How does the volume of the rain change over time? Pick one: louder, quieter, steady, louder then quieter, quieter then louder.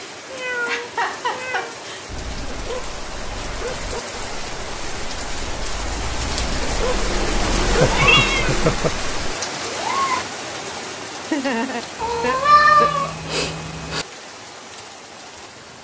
louder then quieter.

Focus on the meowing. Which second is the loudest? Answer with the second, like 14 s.
13 s.